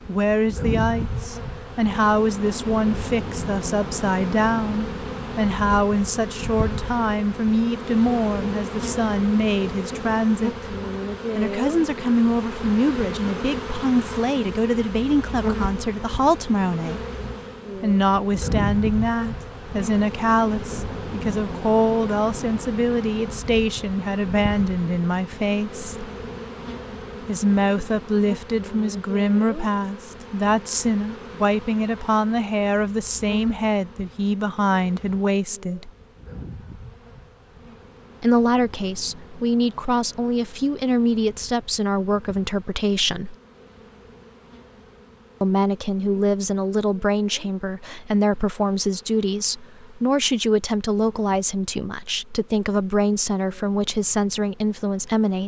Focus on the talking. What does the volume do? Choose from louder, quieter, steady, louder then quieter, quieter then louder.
steady.